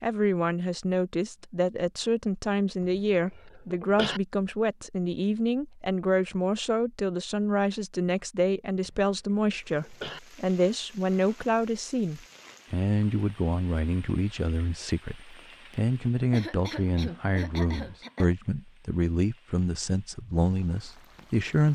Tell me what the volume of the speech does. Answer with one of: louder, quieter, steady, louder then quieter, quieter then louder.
steady.